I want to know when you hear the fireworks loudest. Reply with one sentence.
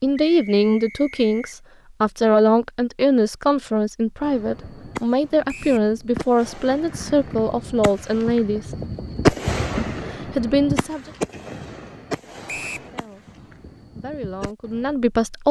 The volume of the fireworks peaks at 9 seconds.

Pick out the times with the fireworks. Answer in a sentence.
The fireworks can be heard from 4.2 to 14.9 s.